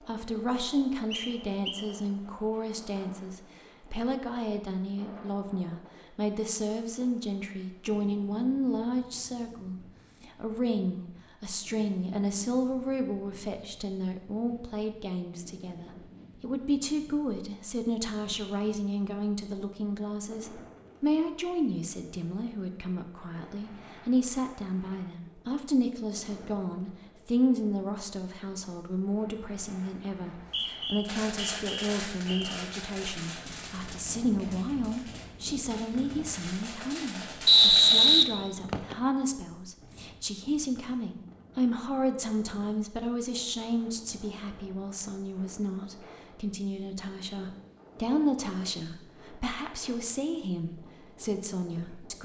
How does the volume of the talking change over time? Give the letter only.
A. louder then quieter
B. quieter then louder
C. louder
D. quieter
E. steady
E.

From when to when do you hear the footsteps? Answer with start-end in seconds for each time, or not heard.
not heard.